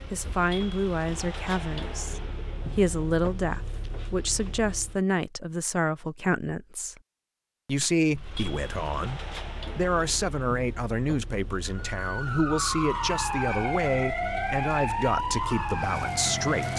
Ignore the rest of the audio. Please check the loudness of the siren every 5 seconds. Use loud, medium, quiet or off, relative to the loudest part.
off, off, loud, loud.